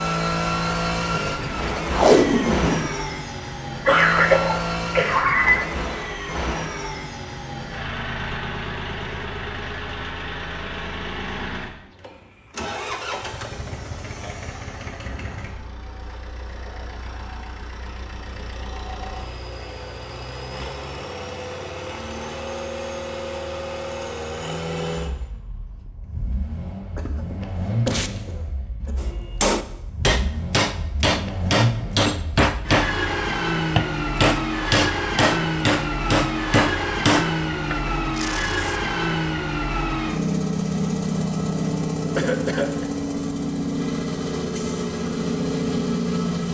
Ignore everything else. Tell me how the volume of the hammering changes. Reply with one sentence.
The volume of the hammering stays about the same.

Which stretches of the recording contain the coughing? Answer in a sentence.
You can hear the coughing from 3.9 to 5.7 s, from 26.9 to 28.9 s and from 42.1 to 42.9 s.